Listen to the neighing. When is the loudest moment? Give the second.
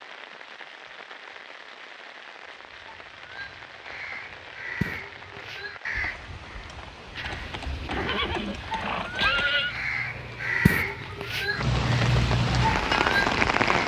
9 s.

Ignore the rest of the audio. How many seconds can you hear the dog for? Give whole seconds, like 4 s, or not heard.
not heard.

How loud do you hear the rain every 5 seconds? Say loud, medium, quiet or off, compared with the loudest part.
quiet, quiet, loud.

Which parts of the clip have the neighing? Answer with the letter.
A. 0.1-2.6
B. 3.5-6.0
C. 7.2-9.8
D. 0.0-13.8
C.